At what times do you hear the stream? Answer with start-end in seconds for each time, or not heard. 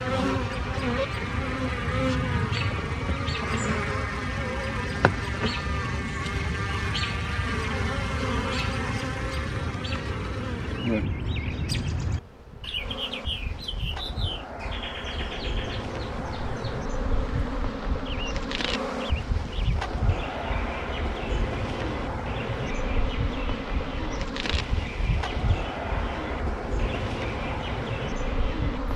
not heard.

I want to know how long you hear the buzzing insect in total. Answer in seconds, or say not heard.
29 s.